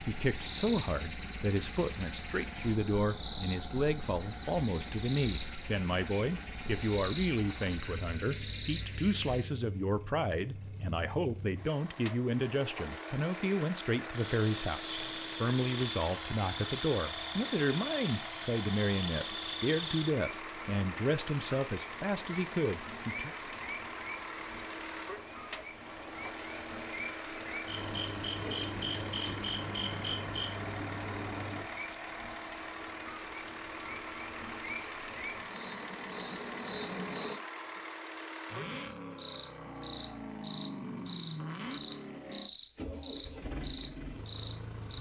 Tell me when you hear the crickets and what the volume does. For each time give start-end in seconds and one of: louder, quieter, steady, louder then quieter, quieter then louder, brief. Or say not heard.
0.0-44.9 steady.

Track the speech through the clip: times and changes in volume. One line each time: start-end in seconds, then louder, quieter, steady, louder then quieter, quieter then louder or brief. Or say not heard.
0.0-23.4 steady.